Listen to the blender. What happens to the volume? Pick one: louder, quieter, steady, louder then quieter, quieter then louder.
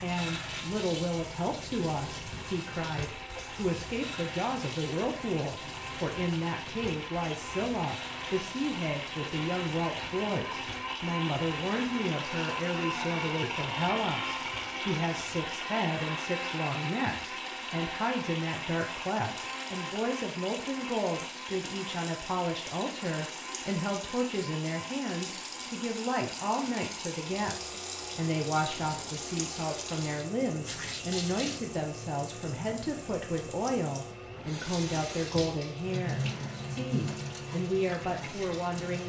louder then quieter.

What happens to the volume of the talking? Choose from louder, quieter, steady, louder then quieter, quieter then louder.
steady.